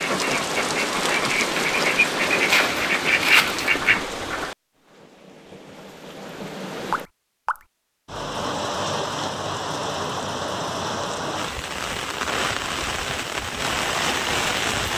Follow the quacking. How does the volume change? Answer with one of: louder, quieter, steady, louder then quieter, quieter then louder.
louder.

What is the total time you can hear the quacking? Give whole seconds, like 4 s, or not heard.
4 s.